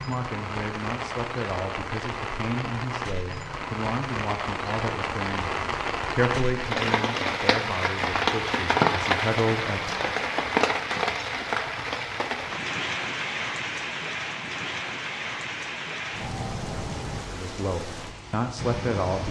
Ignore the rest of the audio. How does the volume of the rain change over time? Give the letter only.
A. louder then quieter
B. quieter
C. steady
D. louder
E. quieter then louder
A.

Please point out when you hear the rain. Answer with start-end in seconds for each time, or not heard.
0.0-19.2.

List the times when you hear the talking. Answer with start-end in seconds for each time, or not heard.
0.0-10.0, 17.2-19.2.